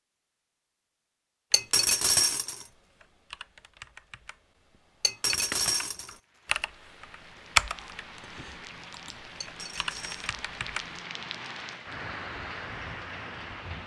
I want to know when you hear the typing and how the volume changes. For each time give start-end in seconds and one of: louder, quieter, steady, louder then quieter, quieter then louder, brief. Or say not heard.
1.5-11.0 louder then quieter.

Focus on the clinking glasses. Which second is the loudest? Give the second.
2 s.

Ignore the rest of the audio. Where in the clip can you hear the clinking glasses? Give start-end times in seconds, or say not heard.
1.5-2.6, 5.0-6.2, 9.4-10.3.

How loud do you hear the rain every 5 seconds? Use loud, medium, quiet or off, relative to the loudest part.
off, medium, loud.